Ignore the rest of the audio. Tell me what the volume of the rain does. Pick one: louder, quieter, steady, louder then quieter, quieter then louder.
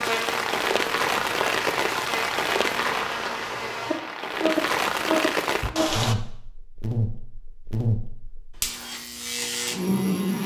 quieter then louder.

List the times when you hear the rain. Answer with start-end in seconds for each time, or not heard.
0.0-6.2.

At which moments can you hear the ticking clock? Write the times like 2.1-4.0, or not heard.
not heard.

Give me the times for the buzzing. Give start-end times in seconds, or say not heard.
0.0-10.4.